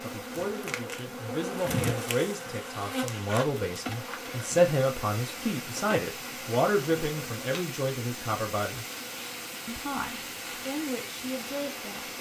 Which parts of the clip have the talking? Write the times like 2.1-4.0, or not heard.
0.0-8.8, 9.7-12.1.